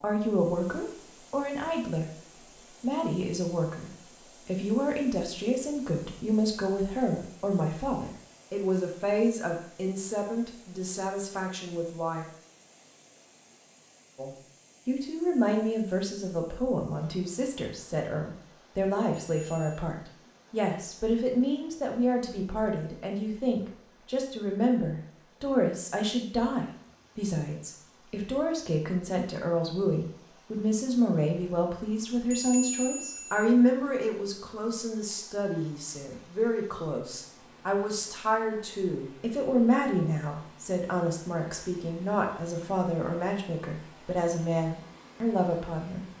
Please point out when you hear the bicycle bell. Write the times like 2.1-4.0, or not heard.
19.1-19.8, 32.3-33.5.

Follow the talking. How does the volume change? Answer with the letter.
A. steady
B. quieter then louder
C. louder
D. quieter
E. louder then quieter
A.